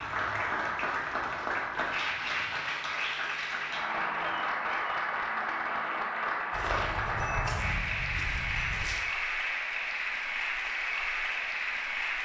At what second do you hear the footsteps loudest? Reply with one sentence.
The loudest moment of the footsteps is at 7 seconds.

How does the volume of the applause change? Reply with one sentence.
The loudness of the applause stays about the same.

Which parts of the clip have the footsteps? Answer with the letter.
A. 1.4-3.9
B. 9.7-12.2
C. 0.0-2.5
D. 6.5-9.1
D.